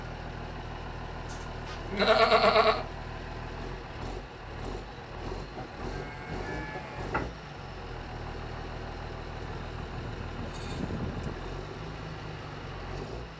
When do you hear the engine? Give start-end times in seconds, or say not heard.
0.0-13.3.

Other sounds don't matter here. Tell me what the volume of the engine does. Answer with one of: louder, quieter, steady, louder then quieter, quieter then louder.
steady.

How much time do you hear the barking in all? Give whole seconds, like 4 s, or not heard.
not heard.